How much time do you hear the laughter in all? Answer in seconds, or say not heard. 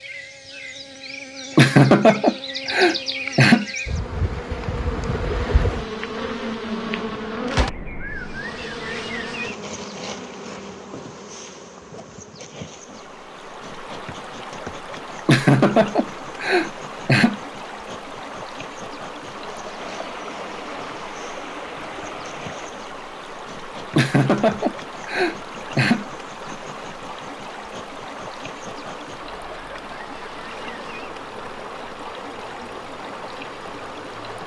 6 s.